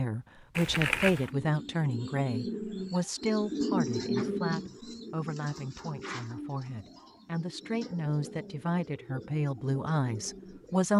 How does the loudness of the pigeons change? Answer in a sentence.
The volume of the pigeons goes up, then down.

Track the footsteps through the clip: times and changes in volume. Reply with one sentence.
You can't hear the footsteps here.